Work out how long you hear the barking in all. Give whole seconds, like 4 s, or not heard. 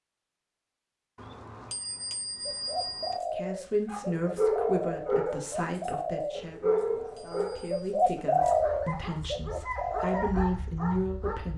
8 s.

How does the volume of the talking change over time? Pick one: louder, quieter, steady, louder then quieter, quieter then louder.
quieter then louder.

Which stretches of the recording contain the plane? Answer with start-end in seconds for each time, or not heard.
not heard.